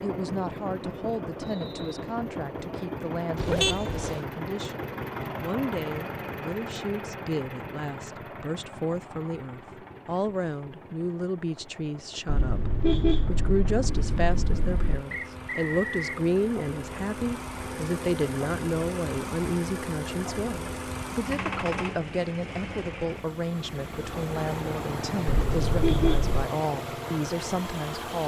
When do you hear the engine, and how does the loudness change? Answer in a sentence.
The engine can be heard from 0.0 to 28.2 s, getting quieter then louder.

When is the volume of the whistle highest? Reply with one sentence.
The loudest moment of the whistle is at 16 seconds.